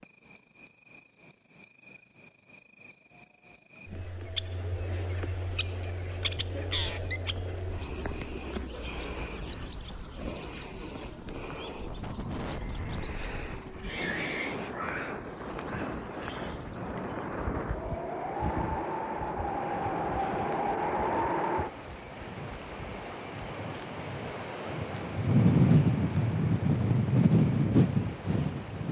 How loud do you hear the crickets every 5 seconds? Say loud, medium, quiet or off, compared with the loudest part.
loud, loud, loud, medium, quiet, quiet.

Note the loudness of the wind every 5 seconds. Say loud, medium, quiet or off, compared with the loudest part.
off, quiet, quiet, medium, medium, loud.